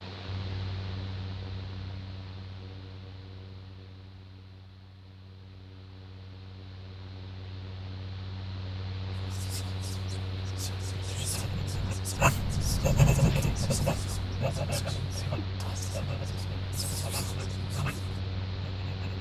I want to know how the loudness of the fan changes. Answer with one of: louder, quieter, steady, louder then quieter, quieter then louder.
quieter then louder.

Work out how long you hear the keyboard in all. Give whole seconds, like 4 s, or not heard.
not heard.